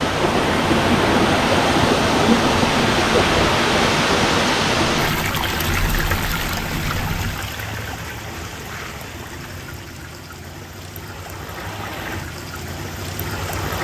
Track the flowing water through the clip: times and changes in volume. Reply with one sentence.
The flowing water can be heard from 0.0 to 13.7 s, getting quieter.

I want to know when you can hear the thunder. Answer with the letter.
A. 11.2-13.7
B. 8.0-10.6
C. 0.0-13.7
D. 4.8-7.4
D.